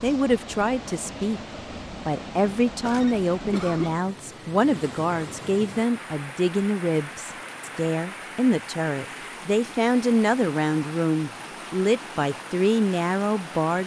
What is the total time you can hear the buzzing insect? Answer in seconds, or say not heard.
not heard.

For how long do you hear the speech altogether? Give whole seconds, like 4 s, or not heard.
13 s.